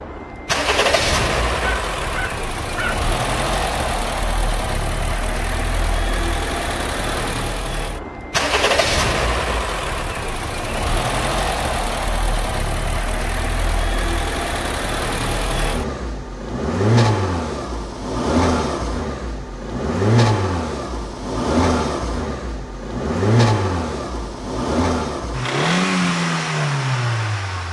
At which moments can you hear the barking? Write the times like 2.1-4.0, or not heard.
1.6-3.0.